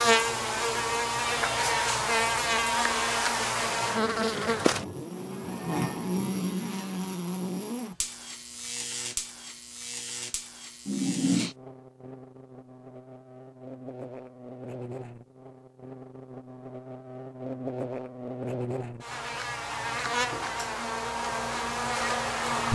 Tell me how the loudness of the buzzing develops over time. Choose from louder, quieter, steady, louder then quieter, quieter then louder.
quieter then louder.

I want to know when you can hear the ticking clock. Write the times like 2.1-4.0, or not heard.
not heard.